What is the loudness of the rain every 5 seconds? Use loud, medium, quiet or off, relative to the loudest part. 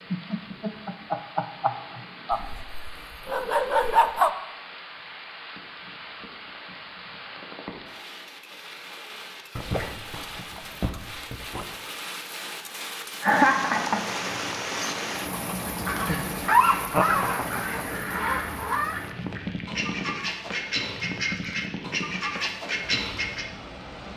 medium, medium, loud, loud, medium.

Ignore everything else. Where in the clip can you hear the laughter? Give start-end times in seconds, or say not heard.
0.1-2.4, 13.2-14.1, 16.9-17.8.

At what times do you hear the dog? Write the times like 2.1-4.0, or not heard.
2.3-4.3, 9.6-11.7, 16.4-18.9.